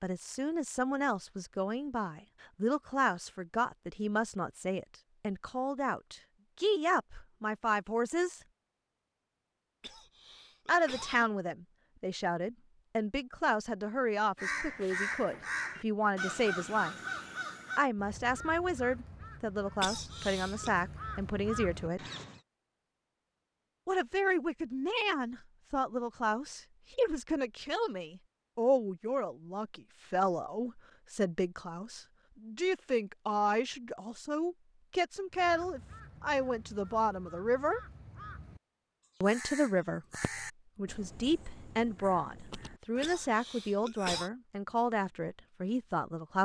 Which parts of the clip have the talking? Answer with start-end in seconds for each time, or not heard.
0.0-8.4, 10.7-16.9, 17.8-22.0, 23.9-37.8, 39.2-40.0, 40.8-46.4.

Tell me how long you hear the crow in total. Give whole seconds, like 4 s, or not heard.
16 s.